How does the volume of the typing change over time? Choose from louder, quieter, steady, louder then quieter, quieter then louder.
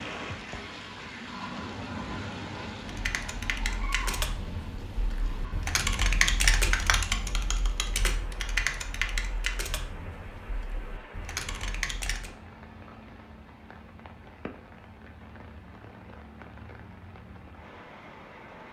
louder then quieter.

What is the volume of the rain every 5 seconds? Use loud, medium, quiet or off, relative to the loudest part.
loud, medium, medium, medium.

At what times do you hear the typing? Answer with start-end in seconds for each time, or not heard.
2.9-12.3.